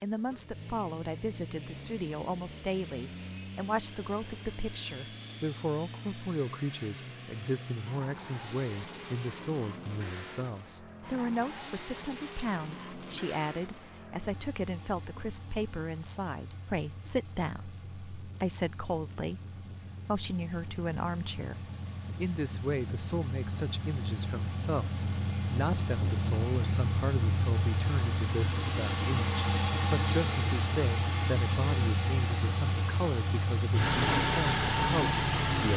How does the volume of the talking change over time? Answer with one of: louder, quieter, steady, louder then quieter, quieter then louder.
steady.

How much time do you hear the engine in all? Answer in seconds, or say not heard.
36 s.